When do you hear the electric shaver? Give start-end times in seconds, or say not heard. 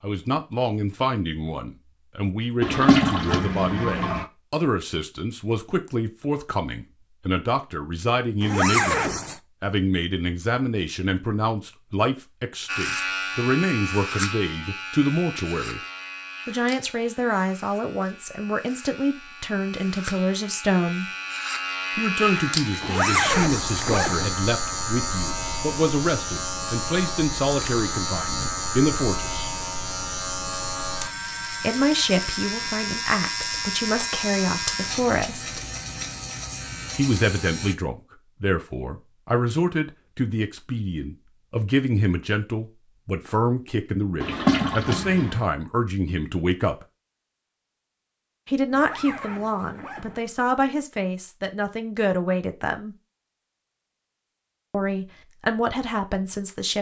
12.7-37.8.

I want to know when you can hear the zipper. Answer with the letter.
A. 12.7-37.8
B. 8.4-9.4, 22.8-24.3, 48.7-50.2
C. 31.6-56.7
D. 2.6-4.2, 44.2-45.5
B.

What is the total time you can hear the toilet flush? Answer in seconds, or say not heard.
3 s.